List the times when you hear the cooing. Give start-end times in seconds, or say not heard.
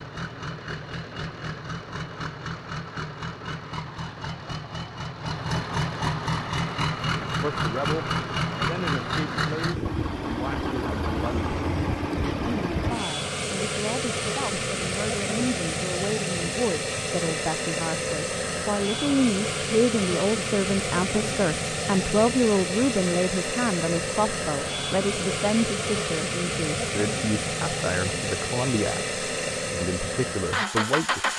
not heard.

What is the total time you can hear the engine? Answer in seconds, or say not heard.
31 s.